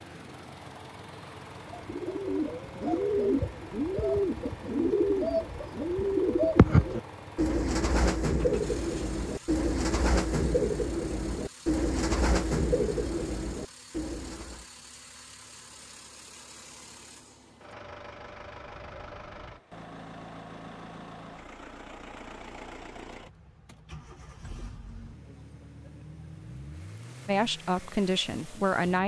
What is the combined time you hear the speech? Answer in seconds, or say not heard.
2 s.